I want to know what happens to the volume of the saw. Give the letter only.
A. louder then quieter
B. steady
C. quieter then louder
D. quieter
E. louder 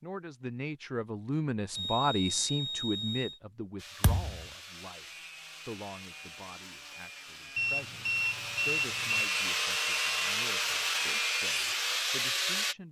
E.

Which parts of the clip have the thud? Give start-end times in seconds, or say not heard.
4.0-4.5.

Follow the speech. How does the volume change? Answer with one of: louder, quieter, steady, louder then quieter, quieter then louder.
quieter.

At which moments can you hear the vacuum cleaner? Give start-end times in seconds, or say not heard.
not heard.